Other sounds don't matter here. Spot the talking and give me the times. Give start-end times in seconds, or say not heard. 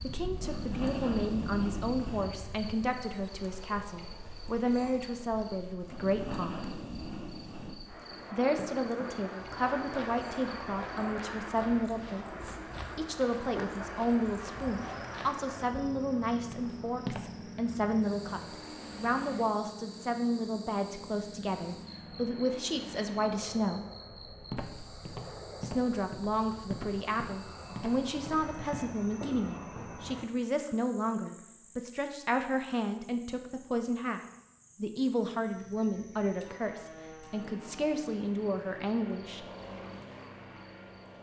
0.0-6.7, 8.3-23.9, 25.6-34.2, 34.8-39.5.